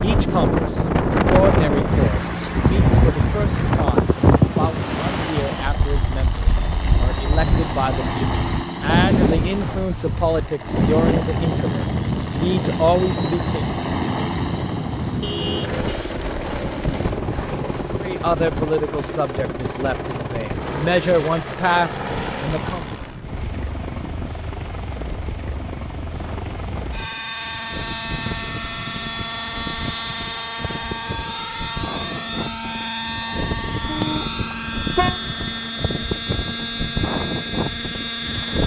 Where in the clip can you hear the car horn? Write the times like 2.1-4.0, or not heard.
15.2-16.0, 33.9-35.8.